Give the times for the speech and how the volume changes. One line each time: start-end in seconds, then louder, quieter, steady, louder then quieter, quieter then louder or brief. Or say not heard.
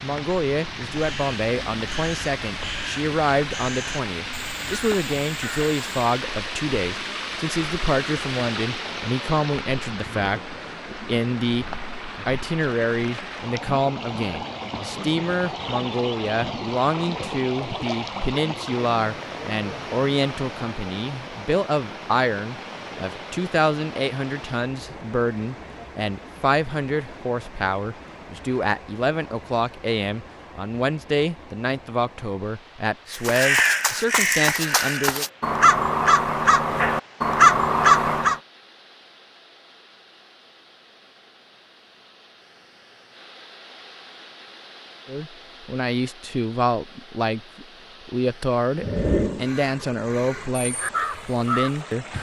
0.0-35.2 steady
45.0-52.1 steady.